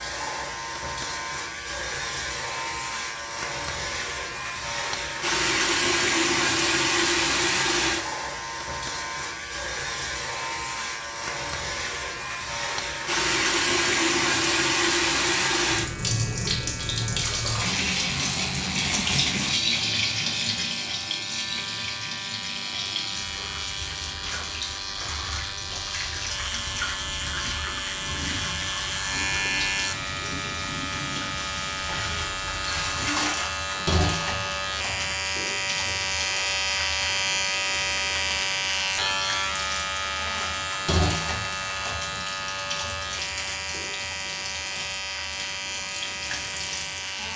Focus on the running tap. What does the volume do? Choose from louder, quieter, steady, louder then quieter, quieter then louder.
quieter.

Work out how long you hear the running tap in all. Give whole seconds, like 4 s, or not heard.
47 s.